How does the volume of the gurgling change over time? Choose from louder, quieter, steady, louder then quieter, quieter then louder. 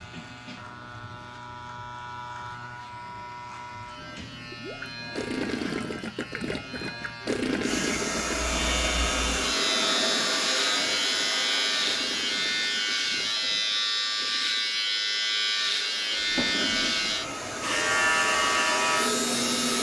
quieter.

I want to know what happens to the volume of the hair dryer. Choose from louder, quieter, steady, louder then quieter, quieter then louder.
quieter then louder.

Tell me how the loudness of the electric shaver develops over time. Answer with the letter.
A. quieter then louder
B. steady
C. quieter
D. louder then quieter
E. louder
E.